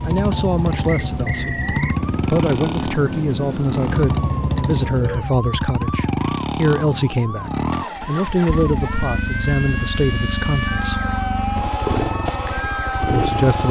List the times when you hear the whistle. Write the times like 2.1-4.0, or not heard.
0.8-2.0.